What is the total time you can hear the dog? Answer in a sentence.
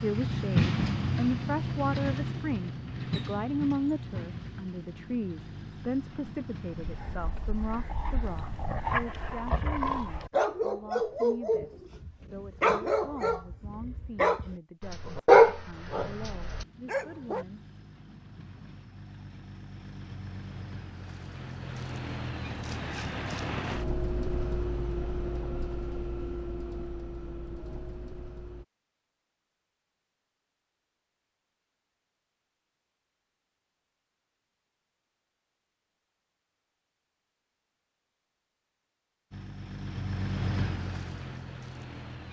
You can hear the dog for 11 seconds altogether.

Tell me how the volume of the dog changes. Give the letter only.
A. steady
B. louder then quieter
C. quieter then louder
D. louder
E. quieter
D.